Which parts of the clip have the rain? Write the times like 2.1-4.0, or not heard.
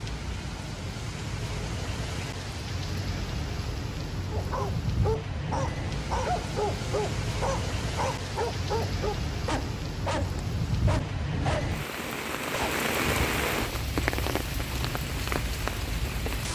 0.0-16.4.